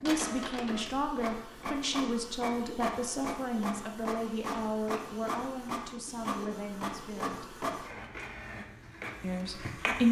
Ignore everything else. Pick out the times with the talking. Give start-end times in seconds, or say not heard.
0.0-7.5, 9.2-10.0.